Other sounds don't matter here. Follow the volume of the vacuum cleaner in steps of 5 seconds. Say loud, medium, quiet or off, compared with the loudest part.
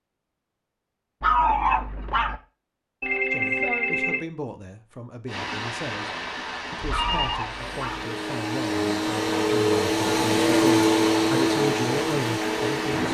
off, loud, loud.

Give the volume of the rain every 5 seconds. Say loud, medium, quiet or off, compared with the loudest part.
off, loud, loud.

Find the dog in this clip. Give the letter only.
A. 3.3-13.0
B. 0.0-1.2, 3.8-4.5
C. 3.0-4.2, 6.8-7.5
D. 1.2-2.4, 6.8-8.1
D.